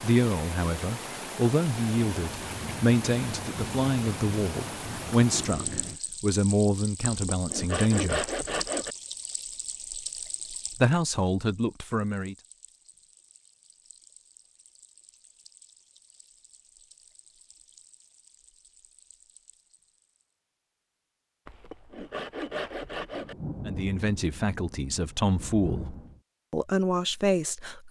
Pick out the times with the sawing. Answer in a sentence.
You can hear the sawing from 7.0 to 8.9 s and from 21.4 to 23.4 s.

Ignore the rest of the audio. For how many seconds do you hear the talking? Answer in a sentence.
The talking can be heard for 14 seconds in total.